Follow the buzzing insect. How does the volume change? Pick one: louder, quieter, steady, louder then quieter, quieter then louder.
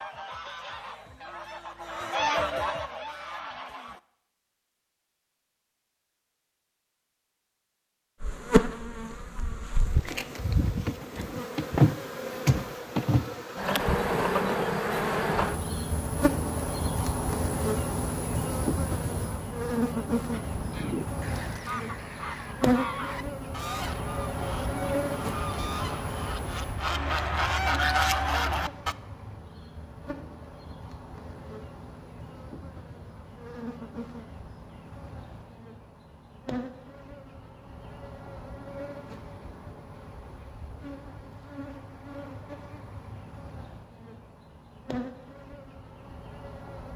quieter.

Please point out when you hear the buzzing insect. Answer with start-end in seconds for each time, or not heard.
8.2-46.9.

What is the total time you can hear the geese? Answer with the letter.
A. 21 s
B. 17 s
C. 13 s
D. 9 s
C.